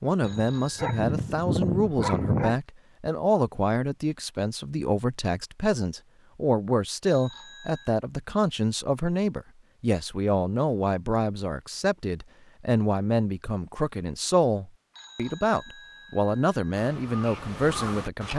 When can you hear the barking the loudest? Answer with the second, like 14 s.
2 s.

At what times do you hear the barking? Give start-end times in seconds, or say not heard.
0.2-2.6.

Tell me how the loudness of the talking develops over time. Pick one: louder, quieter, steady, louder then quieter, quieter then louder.
steady.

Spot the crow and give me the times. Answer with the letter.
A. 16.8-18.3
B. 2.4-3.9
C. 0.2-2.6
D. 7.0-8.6
A.